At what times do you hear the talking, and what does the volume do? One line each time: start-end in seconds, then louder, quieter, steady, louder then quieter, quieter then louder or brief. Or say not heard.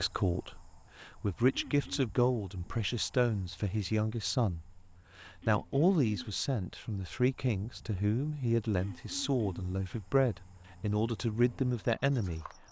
0.0-12.4 steady.